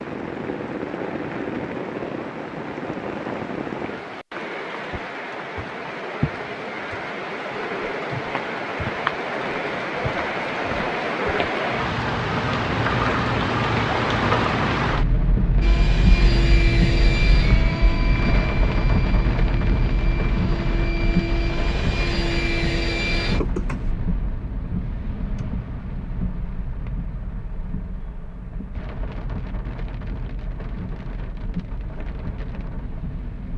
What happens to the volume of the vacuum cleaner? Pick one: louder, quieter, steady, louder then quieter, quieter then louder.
quieter then louder.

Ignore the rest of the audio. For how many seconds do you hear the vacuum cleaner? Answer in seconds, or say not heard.
8 s.